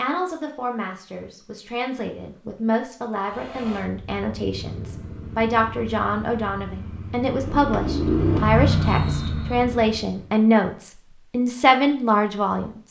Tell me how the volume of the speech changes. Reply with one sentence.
The loudness of the speech goes up.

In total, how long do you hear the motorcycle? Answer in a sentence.
You can hear the motorcycle for 7 seconds altogether.